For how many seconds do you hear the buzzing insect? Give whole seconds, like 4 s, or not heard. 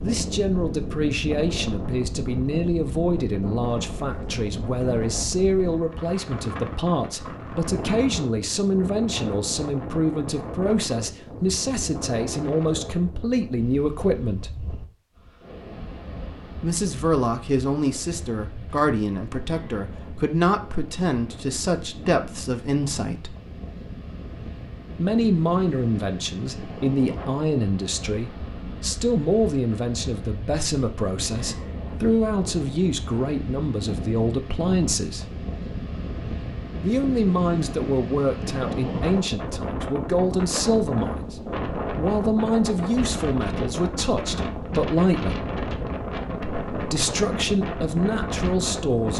not heard.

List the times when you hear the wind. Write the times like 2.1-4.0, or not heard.
0.0-49.1.